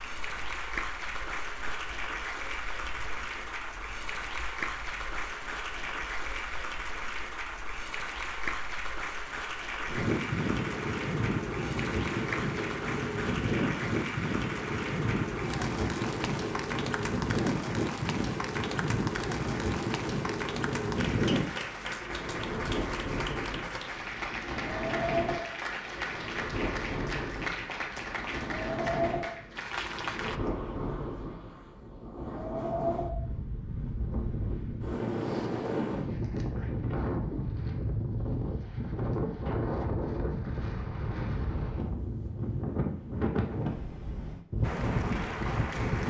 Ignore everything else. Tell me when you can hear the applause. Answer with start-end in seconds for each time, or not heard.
0.0-30.4, 44.6-46.0.